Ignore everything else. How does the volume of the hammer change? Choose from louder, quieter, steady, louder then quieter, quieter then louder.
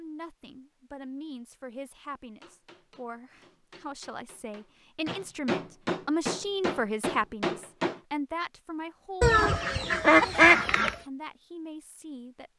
louder.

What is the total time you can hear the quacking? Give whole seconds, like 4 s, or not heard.
2 s.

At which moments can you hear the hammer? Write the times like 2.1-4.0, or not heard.
2.4-8.0.